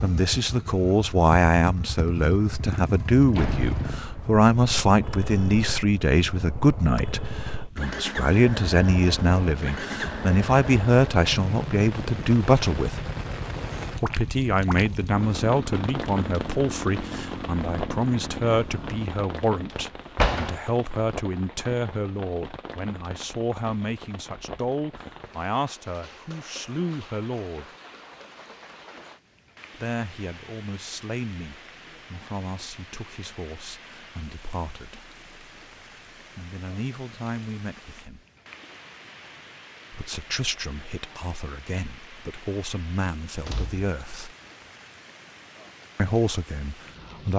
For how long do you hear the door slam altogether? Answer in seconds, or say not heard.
2 s.